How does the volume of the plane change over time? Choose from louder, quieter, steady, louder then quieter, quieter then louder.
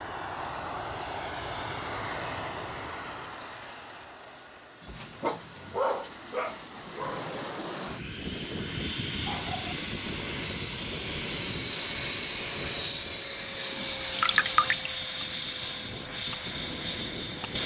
quieter then louder.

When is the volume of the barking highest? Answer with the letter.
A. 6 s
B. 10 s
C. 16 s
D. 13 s
A.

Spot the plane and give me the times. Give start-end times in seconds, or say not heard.
0.0-17.6.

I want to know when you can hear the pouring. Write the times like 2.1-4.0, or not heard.
14.1-14.9.